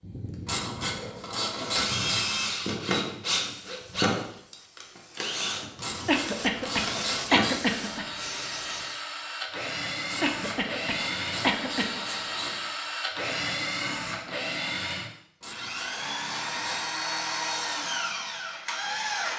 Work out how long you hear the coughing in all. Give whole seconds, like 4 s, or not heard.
4 s.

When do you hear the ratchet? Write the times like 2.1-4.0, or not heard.
0.5-2.2, 5.8-7.6, 10.1-12.7, 15.4-17.0.